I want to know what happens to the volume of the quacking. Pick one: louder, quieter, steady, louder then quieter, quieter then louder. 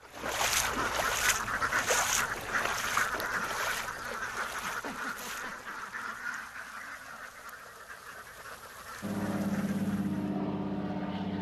quieter.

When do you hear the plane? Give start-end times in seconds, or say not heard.
9.0-11.3.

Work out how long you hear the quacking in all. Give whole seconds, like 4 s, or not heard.
10 s.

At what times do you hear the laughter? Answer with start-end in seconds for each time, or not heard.
4.7-6.2.